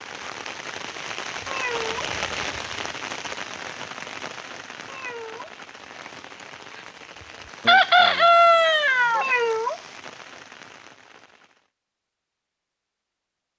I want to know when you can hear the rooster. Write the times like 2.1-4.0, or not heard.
7.7-9.3.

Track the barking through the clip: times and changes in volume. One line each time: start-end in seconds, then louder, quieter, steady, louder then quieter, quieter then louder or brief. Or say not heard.
not heard.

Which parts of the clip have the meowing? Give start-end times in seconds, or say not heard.
1.4-2.1, 4.8-5.5, 9.2-9.8.